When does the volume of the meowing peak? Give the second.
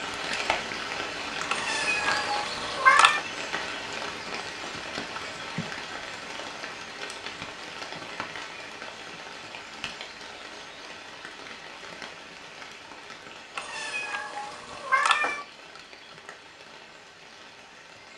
3 s.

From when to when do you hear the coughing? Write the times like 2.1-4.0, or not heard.
not heard.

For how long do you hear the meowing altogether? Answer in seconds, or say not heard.
4 s.